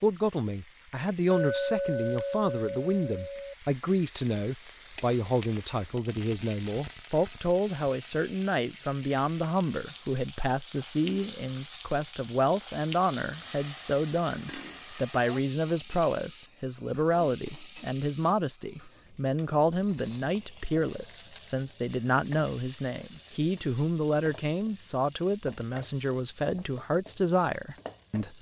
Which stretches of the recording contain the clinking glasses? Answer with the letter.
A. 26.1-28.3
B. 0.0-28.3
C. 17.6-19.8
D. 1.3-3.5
D.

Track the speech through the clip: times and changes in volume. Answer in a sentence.
You can hear the speech from 0.0 to 28.3 s, at a steady volume.